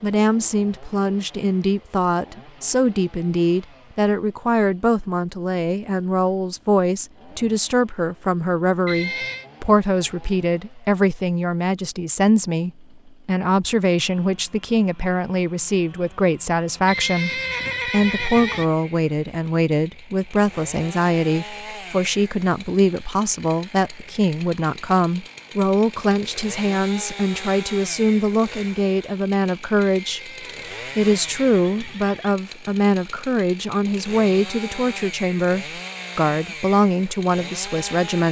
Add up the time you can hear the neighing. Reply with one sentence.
You can hear the neighing for 5 seconds altogether.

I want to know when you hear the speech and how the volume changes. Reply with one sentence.
The speech can be heard from 0.0 to 30.3 s, at a steady volume; and from 30.9 to 38.2 s, at a steady volume.